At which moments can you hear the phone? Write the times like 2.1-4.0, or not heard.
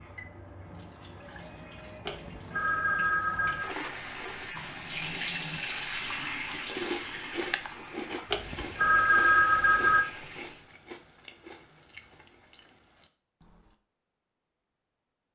2.0-3.7, 8.3-10.1.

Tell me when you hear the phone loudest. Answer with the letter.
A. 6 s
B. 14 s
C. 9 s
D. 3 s
C.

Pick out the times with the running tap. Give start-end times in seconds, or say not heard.
0.0-10.7.